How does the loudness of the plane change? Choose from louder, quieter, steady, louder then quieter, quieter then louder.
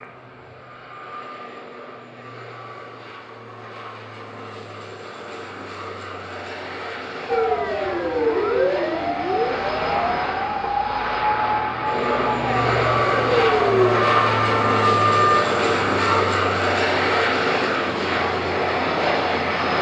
louder.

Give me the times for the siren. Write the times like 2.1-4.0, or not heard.
7.2-16.2.